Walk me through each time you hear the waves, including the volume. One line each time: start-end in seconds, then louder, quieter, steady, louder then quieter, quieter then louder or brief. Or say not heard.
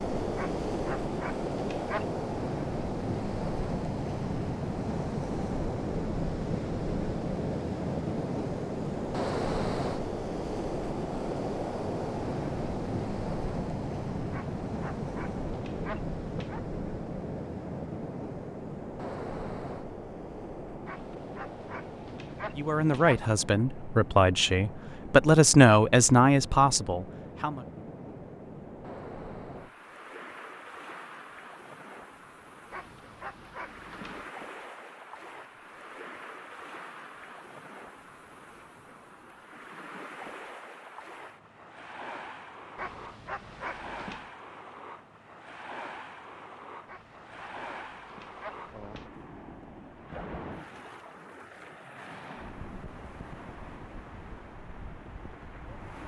0.0-56.0 quieter.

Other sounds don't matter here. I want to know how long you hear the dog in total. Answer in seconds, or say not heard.
12 s.